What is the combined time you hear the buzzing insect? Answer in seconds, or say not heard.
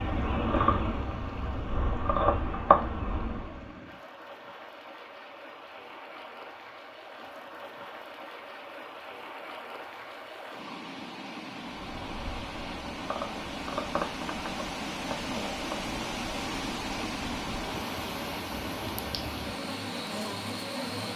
13 s.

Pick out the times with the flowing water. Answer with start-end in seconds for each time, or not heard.
0.0-21.1.